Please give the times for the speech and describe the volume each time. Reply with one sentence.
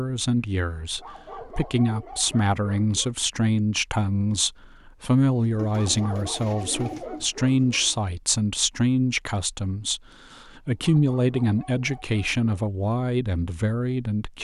You can hear the speech from 0.0 to 14.3 s, at a steady volume.